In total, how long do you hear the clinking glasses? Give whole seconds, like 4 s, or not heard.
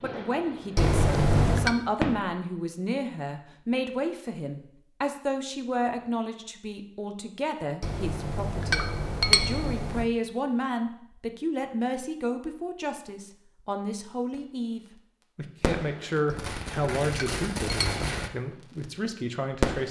5 s.